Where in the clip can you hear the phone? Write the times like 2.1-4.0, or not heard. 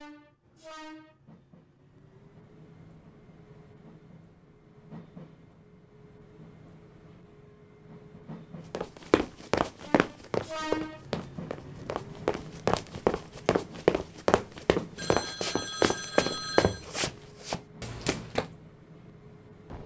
14.9-16.9.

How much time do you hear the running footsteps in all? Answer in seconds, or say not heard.
10 s.